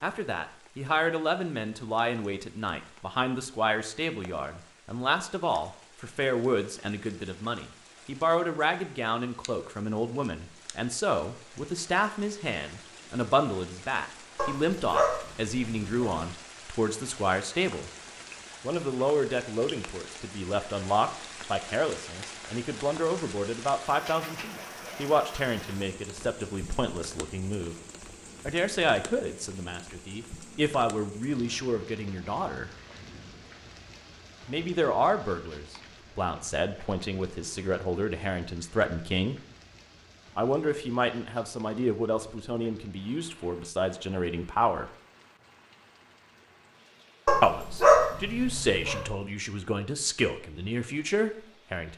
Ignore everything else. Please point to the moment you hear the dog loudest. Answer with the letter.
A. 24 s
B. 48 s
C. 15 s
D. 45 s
B.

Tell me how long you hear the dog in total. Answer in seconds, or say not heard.
4 s.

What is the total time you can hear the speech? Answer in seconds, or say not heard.
45 s.